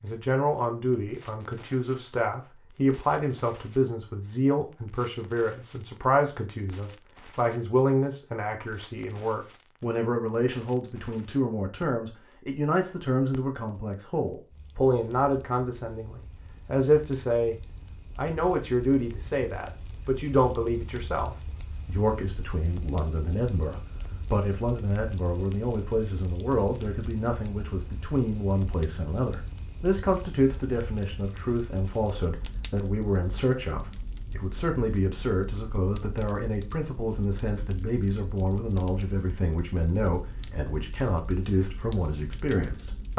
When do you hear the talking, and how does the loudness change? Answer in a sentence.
The talking can be heard from 0.0 to 17.6 s, at a steady volume; and from 18.1 to 43.1 s, at a steady volume.